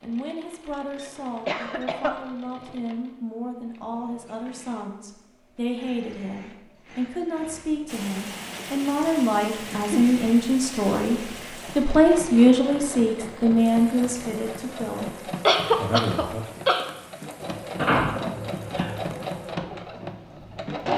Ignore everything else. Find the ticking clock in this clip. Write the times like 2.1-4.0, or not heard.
not heard.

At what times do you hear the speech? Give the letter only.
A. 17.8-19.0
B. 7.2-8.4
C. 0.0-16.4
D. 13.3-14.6
C.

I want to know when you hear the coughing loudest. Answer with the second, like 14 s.
16 s.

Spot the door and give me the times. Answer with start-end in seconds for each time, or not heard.
17.8-19.0.